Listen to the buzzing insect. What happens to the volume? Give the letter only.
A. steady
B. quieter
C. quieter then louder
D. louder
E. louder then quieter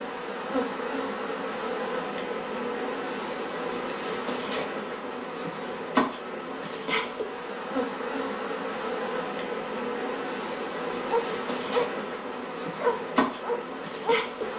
A.